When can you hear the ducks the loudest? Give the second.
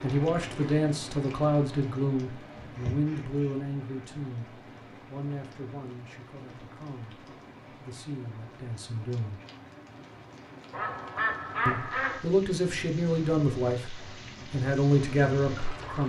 12 s.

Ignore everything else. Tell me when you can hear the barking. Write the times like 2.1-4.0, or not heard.
not heard.